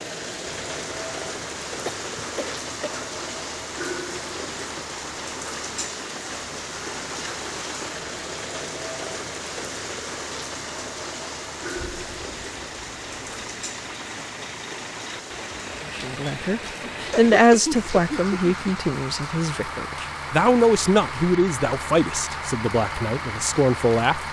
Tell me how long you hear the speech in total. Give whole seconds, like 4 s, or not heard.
8 s.